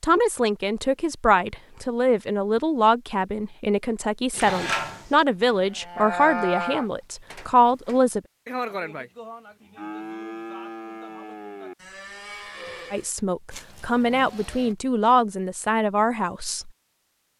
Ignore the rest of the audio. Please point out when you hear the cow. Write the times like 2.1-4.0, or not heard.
4.3-14.8.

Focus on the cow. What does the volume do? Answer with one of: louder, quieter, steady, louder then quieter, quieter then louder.
quieter.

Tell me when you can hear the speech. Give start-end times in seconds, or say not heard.
0.0-8.2, 12.9-16.7.